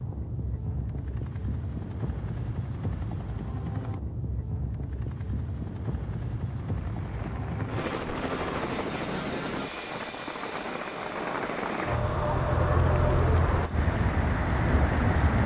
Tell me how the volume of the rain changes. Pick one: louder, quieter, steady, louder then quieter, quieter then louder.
louder.